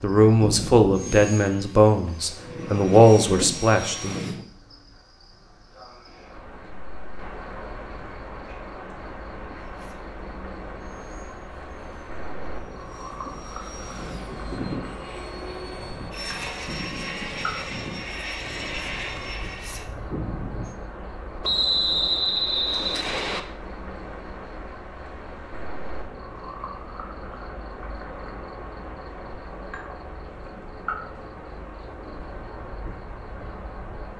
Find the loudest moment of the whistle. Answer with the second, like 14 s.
22 s.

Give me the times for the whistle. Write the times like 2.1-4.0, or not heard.
21.4-23.4.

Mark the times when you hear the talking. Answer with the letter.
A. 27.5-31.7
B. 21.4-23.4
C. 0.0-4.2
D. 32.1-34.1
C.